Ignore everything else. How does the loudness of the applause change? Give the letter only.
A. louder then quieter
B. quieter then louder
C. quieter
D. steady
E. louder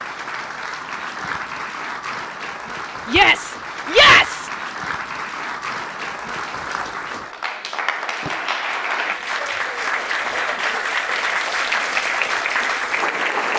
E.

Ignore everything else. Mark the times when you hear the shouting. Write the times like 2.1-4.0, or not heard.
3.0-4.5.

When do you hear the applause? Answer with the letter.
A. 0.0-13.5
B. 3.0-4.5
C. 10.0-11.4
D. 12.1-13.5
A.